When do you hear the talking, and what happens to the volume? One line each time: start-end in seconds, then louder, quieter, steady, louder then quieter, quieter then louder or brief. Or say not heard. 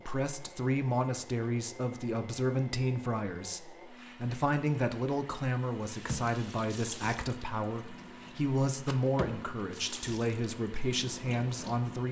0.1-12.0 steady.